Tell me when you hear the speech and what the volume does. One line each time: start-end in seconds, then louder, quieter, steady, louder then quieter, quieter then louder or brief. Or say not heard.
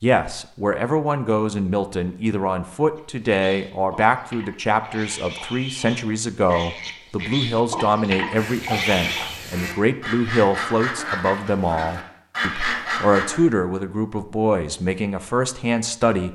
0.0-16.3 steady.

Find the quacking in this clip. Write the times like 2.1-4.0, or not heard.
8.3-13.4.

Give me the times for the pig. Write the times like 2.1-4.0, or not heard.
3.0-9.4.